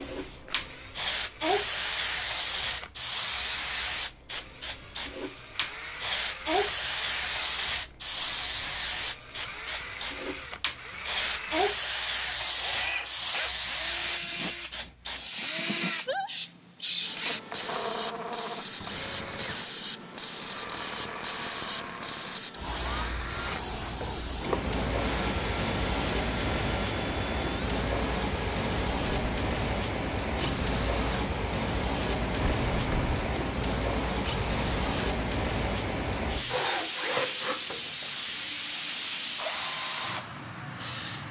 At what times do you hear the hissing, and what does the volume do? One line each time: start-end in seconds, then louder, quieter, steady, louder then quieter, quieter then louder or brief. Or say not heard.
0.0-41.2 steady.